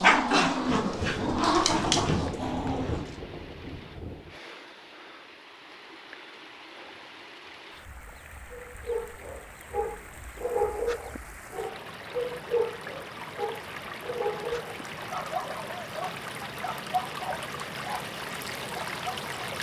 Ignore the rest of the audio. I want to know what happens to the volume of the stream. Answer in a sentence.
The loudness of the stream goes up.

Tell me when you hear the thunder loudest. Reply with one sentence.
The loudest moment of the thunder is at 2 seconds.